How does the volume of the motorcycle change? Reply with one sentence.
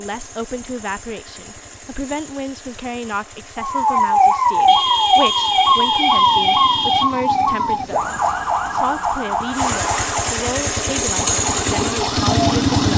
The loudness of the motorcycle goes up.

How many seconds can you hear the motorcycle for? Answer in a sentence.
You can hear the motorcycle for 13 seconds altogether.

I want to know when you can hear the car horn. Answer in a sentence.
You can hear the car horn from 4.7 to 7.2 s.